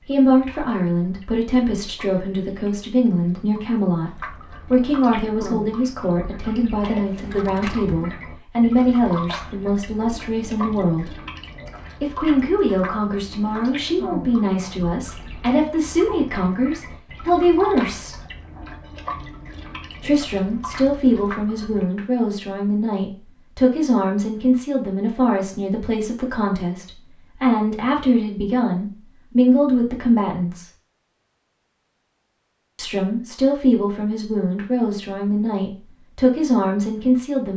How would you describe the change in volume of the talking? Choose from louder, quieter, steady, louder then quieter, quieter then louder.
steady.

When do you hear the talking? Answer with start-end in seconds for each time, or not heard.
0.1-11.2, 12.0-18.2, 20.0-30.7, 32.8-37.5.